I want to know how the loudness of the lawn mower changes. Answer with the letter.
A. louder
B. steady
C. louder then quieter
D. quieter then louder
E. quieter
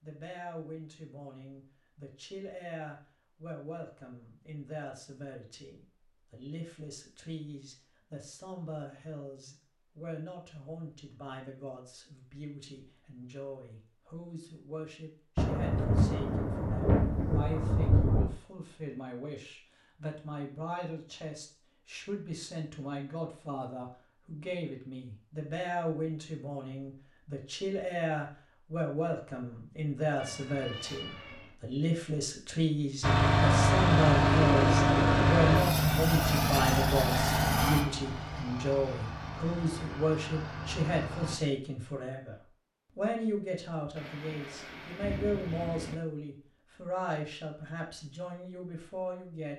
E.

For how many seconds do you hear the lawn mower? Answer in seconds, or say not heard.
8 s.